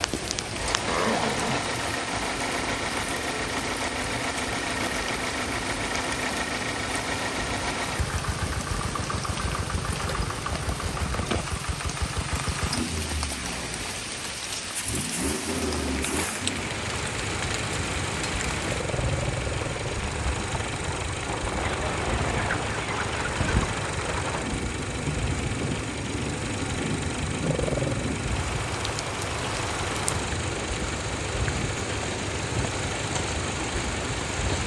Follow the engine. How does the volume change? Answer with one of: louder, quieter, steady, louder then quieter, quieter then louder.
steady.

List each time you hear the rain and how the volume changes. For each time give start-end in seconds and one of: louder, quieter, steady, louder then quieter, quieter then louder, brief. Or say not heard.
0.0-34.6 steady.